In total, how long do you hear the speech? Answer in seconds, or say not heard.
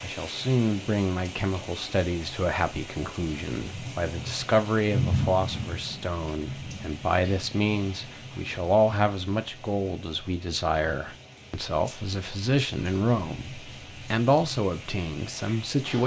16 s.